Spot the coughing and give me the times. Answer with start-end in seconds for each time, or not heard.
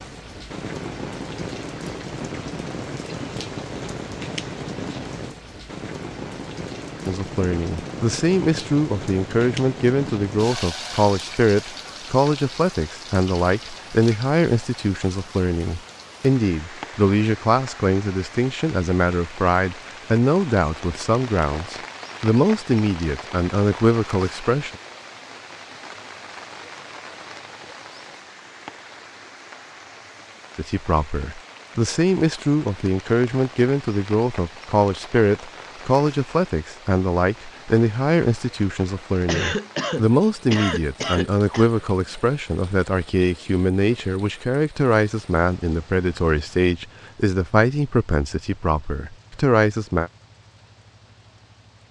39.2-41.7.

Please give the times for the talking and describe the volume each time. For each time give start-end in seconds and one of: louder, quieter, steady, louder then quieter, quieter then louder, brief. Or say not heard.
7.0-24.8 steady
30.6-50.1 steady.